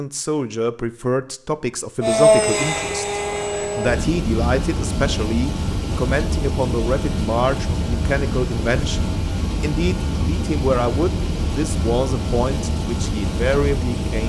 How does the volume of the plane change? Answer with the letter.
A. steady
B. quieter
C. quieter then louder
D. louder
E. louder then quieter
A.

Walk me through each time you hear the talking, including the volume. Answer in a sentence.
The talking can be heard from 0.0 to 14.2 s, at a steady volume.